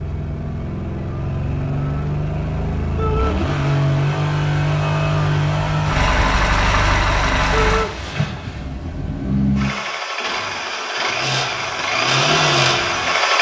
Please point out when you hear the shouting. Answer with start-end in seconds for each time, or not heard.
3.0-3.4, 7.5-8.0.